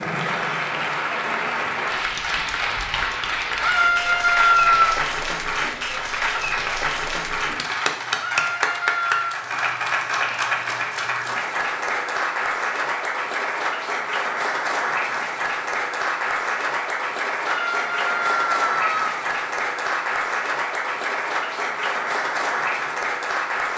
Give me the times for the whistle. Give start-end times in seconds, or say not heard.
not heard.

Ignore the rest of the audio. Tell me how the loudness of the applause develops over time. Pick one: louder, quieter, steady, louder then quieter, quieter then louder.
steady.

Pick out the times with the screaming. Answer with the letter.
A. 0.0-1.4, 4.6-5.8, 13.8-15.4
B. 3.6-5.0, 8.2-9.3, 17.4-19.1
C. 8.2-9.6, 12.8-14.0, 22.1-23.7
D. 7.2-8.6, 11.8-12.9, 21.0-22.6
B.